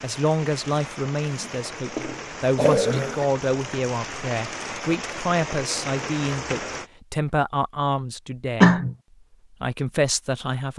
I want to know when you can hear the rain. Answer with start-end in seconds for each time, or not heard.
0.0-6.9.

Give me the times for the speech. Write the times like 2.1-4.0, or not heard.
0.0-8.8, 9.6-10.7.